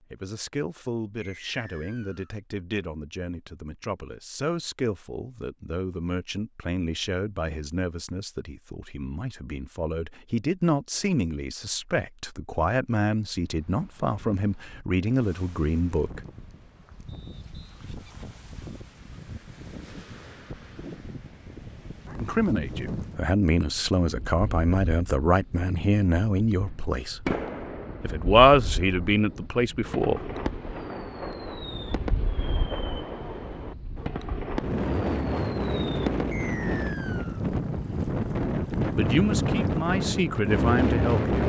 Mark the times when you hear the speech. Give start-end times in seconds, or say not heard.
0.0-16.2, 22.2-27.3, 28.0-30.2, 38.9-41.4.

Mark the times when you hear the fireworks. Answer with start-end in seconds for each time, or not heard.
26.6-36.3.